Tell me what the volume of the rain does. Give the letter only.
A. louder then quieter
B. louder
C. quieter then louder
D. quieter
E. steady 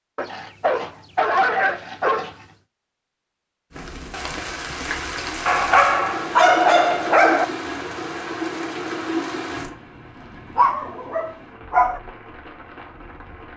D.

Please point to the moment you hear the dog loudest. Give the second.
7 s.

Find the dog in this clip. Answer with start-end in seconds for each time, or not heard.
0.1-2.5, 5.5-7.5, 10.6-12.0.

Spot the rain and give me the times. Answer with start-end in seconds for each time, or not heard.
3.7-13.5.